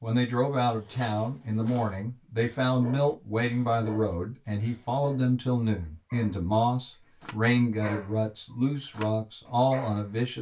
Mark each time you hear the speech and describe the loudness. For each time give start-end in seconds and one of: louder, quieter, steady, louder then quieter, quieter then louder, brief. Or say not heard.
0.0-10.3 steady.